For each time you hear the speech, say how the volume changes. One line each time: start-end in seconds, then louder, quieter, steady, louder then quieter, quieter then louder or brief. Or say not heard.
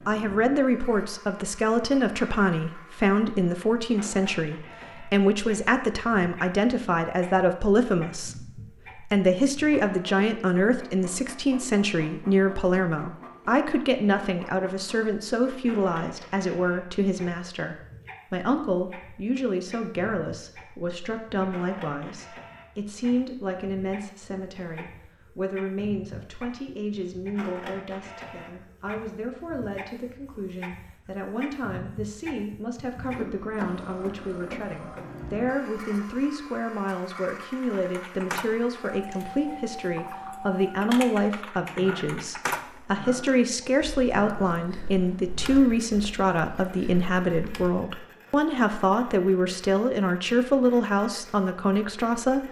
0.1-52.4 quieter then louder.